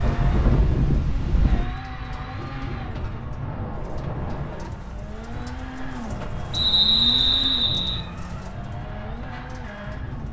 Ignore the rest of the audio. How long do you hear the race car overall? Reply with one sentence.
The race car can be heard for 10 seconds in total.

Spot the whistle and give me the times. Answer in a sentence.
You can hear the whistle from 6.5 to 8.1 s.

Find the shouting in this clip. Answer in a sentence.
You can't hear the shouting here.